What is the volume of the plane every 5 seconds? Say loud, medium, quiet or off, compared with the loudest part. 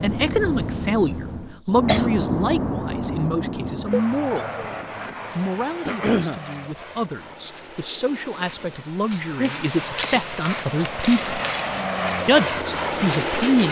loud, medium, loud.